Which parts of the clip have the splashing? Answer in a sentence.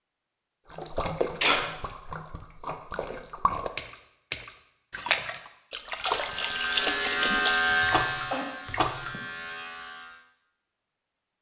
The splashing can be heard from 0.7 to 9.2 s.